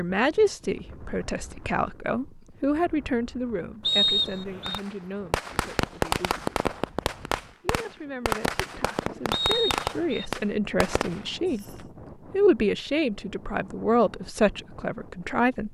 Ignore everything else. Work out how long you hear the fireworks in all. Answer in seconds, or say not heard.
7 s.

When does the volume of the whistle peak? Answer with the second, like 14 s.
4 s.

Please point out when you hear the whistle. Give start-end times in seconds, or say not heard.
3.9-4.8, 9.3-10.2.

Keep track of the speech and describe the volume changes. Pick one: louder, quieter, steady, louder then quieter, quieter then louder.
quieter then louder.